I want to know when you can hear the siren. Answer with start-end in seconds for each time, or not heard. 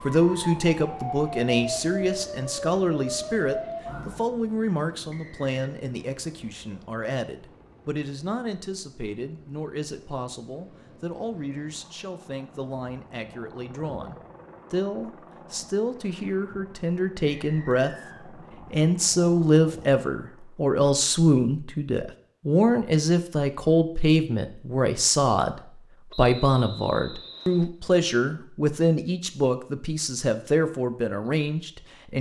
0.0-4.2.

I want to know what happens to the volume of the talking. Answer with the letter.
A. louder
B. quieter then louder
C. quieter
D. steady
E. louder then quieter
B.